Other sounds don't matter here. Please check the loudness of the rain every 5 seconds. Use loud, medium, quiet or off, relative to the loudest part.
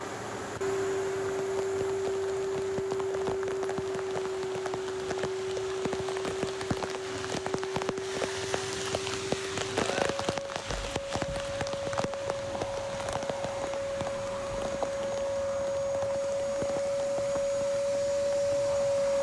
medium, loud, loud, medium.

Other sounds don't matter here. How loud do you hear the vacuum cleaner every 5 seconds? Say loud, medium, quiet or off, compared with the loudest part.
loud, medium, medium, loud.